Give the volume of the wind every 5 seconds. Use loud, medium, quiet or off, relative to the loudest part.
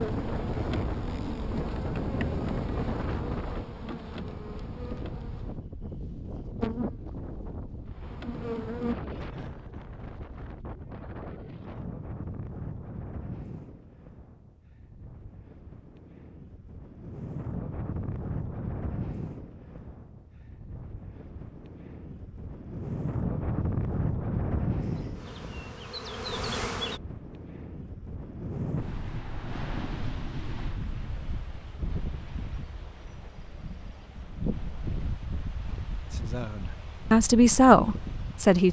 loud, medium, medium, medium, loud, medium, medium, medium.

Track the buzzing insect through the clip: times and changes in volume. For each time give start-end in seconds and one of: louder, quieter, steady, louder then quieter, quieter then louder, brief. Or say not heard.
0.0-5.6 quieter
6.6-8.9 brief
24.8-27.0 brief.